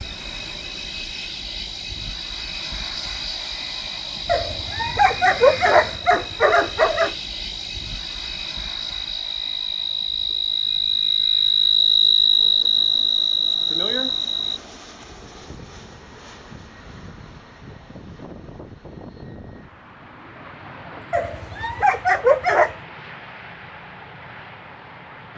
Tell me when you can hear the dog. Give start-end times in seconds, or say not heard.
4.2-7.2, 21.1-22.8.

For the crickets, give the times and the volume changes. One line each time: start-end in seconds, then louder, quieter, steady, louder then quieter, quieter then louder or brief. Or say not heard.
0.0-14.6 louder.